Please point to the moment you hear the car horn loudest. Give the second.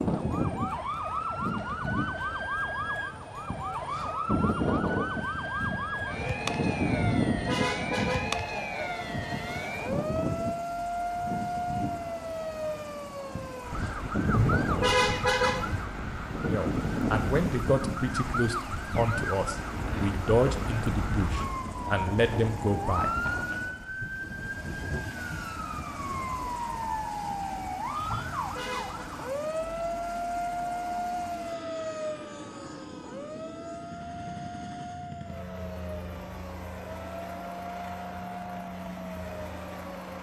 15 s.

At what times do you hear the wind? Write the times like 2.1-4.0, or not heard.
0.0-23.5.